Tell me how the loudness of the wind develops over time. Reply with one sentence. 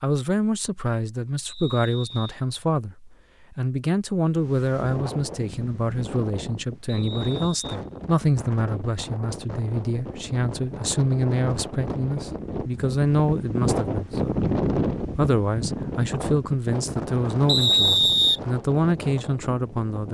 The loudness of the wind goes up, then down.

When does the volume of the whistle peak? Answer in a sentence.
The volume of the whistle peaks at 18 seconds.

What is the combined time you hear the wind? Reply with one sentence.
The wind can be heard for 16 seconds in total.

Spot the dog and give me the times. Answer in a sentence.
You can't hear the dog here.